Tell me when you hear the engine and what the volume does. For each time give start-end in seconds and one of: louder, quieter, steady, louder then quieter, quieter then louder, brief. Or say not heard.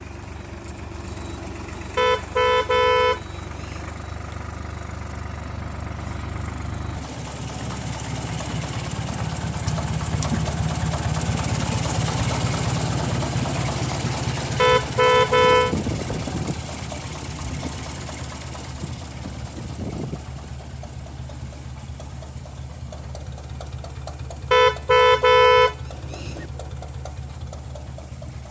0.0-28.4 louder then quieter.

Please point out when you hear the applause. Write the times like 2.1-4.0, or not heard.
not heard.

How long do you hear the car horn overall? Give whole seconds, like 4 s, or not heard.
5 s.